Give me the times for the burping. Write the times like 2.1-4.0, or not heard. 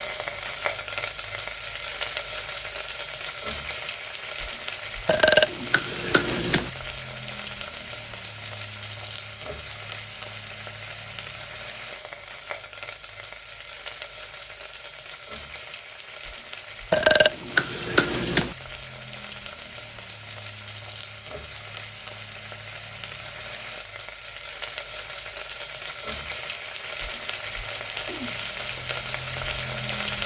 5.0-6.7, 16.9-18.6.